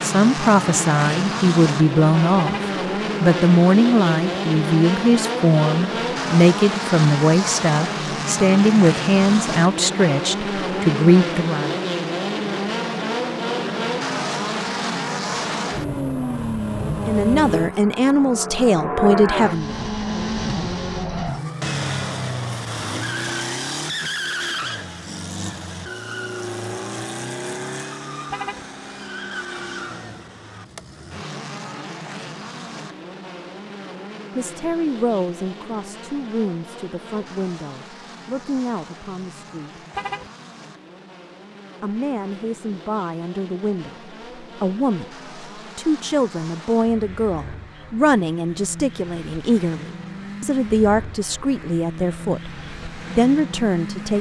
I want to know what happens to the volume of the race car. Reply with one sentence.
The volume of the race car goes down.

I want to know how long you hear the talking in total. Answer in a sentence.
You can hear the talking for 32 seconds altogether.